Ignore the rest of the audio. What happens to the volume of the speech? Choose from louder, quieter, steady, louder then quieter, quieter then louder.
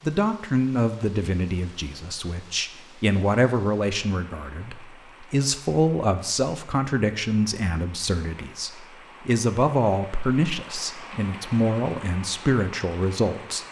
steady.